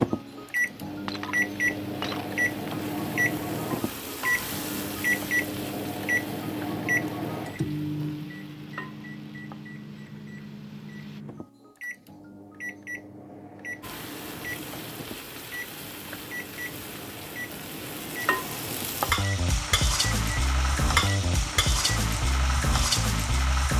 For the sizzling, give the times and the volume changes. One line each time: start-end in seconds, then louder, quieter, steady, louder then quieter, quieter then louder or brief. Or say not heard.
0.0-11.2 louder then quieter
13.8-23.7 louder.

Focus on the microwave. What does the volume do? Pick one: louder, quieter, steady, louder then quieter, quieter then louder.
quieter.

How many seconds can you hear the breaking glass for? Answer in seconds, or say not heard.
2 s.